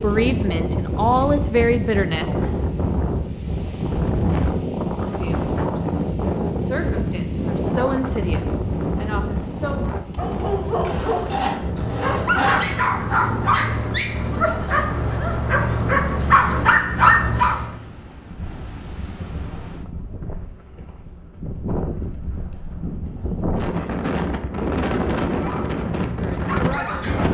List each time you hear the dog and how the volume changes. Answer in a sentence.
You can hear the dog from 9.9 to 17.8 s, getting louder; and briefly from 25.4 to 27.2 s.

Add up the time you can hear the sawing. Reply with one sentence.
You can hear the sawing for 2 seconds altogether.